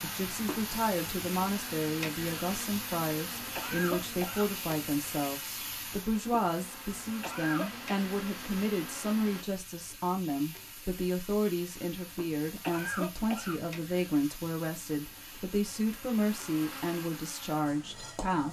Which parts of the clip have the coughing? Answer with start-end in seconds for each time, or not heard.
3.5-4.5, 7.2-7.8, 12.6-13.6.